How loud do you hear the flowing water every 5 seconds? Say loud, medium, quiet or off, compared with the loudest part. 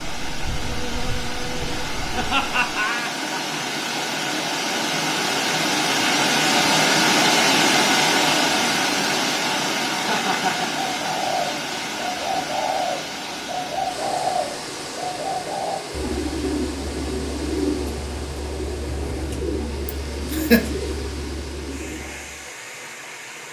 medium, loud, medium, quiet, quiet.